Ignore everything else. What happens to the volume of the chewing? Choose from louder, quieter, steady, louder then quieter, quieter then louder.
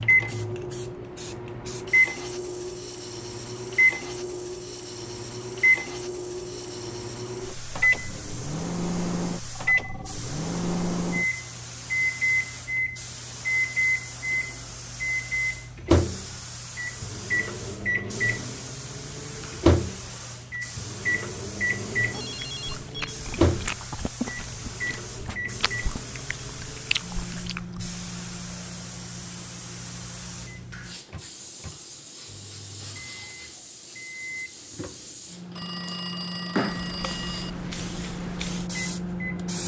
quieter then louder.